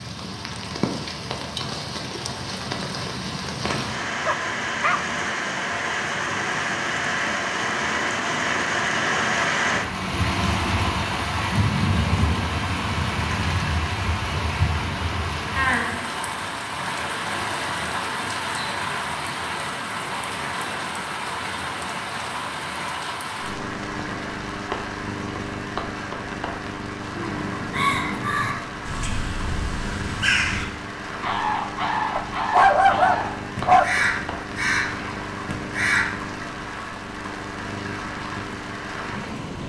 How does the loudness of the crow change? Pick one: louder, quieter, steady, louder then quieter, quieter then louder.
steady.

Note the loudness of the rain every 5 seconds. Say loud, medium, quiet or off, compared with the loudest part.
medium, loud, loud, loud, medium, medium, medium, medium.